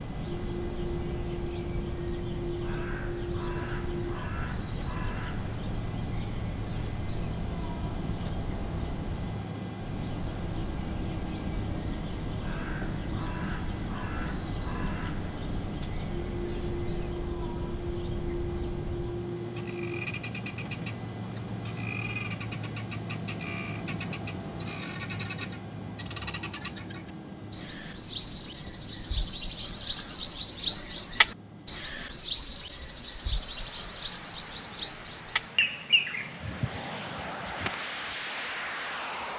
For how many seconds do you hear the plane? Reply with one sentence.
You can hear the plane for 39 seconds altogether.